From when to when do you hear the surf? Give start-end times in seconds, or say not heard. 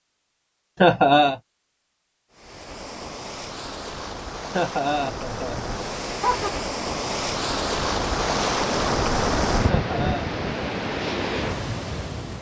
2.3-12.3.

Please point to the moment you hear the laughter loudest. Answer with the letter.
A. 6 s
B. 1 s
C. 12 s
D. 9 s
B.